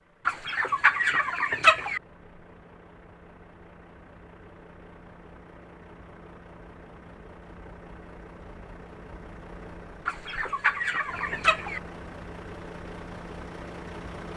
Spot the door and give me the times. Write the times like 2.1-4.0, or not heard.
not heard.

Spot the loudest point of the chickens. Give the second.
2 s.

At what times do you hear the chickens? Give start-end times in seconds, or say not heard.
0.2-2.0, 10.1-11.8.